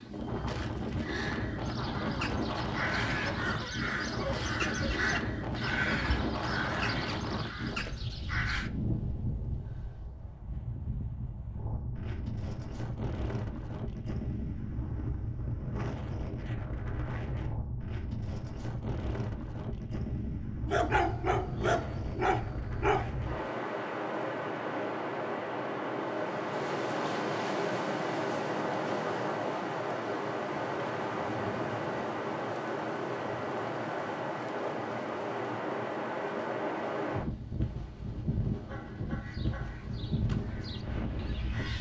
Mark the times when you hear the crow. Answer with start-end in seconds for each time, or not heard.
1.6-8.7, 39.2-41.7.